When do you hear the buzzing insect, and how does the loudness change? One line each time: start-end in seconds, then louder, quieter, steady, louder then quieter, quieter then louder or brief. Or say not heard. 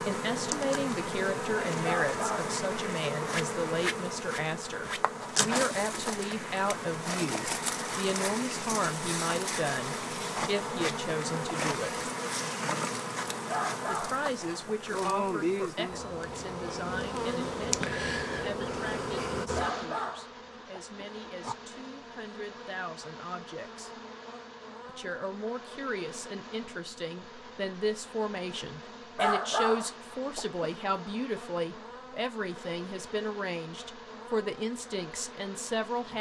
0.0-36.1 quieter.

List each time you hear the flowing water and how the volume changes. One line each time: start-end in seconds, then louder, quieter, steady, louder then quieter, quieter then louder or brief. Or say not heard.
not heard.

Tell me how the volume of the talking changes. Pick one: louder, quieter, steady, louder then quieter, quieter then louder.
quieter then louder.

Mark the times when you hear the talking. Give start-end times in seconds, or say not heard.
0.1-11.9, 13.9-23.9, 24.9-36.1.